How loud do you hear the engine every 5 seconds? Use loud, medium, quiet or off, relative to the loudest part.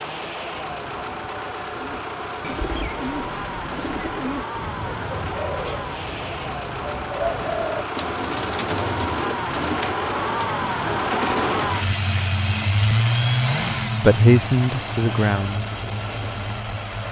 medium, medium, loud, medium.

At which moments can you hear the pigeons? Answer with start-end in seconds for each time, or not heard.
1.8-11.8.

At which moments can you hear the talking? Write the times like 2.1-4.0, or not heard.
14.0-15.7.